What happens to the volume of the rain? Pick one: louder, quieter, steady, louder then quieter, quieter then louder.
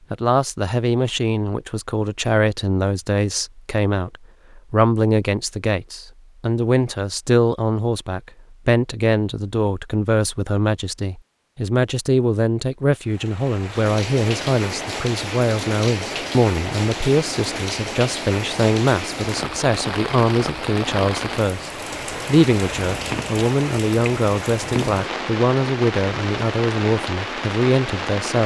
steady.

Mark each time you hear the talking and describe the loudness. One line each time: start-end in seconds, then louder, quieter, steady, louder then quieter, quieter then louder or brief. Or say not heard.
0.1-28.4 steady.